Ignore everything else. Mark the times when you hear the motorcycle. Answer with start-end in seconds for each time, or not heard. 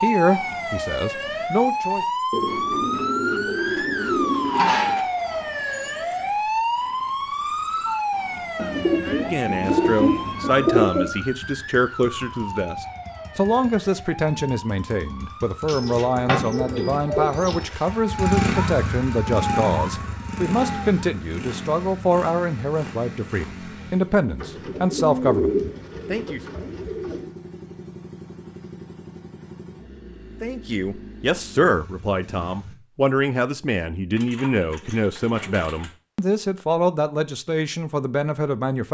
9.6-32.8.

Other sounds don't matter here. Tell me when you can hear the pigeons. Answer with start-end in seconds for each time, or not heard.
2.3-5.0, 8.6-11.1, 15.7-17.6, 24.4-27.3, 34.1-36.0.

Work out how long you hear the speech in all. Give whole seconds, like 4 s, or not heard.
28 s.